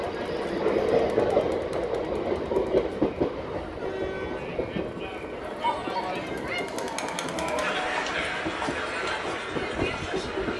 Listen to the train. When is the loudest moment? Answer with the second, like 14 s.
1 s.